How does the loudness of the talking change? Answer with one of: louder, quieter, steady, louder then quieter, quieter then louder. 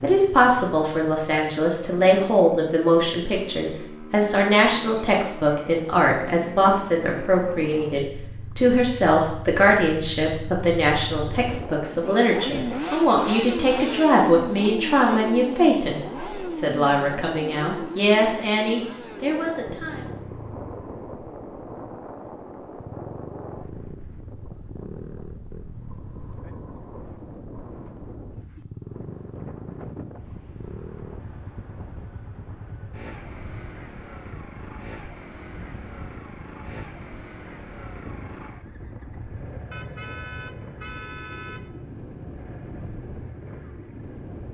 steady.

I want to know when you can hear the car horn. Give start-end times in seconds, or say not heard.
39.7-41.7.